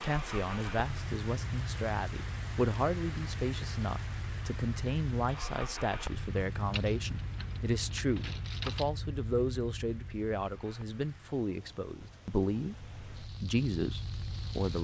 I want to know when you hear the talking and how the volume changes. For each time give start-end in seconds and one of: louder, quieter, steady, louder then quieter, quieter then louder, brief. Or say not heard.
0.0-14.7 steady.